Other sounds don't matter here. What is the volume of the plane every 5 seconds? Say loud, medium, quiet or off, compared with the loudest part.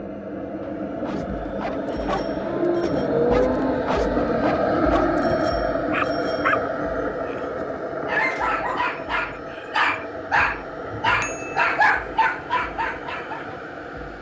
loud, loud, medium.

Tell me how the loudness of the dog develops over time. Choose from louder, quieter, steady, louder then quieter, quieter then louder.
louder.